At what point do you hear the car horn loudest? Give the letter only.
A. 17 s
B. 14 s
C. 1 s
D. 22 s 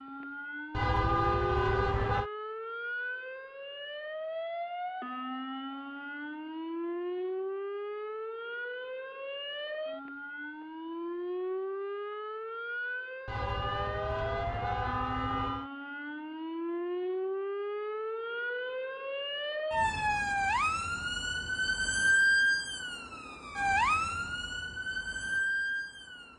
C.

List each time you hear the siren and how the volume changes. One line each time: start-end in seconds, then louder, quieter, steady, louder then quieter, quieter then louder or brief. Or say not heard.
0.0-26.3 louder.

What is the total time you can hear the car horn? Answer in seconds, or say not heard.
4 s.